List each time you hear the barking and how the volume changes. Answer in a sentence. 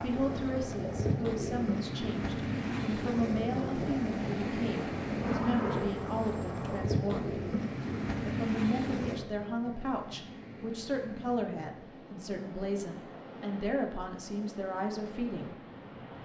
You can't hear the barking here.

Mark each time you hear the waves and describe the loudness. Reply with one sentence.
The waves can be heard from 0.0 to 16.1 s, getting quieter.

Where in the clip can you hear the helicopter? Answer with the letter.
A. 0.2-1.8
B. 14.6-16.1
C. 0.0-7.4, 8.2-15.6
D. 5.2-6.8
D.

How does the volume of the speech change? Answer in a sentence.
The volume of the speech stays about the same.